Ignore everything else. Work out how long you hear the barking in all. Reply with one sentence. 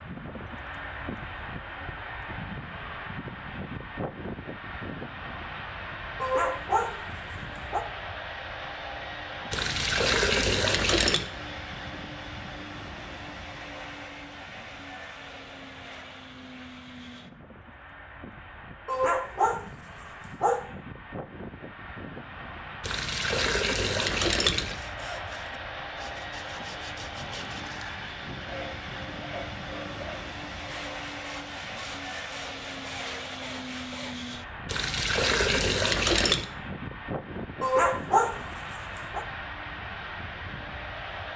You can hear the barking for 5 seconds altogether.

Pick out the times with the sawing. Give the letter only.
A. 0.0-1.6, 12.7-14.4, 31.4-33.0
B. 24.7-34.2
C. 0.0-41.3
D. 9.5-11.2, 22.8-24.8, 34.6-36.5
B.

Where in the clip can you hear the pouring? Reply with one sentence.
The pouring can be heard from 9.5 to 11.2 s, from 22.8 to 24.8 s and from 34.6 to 36.5 s.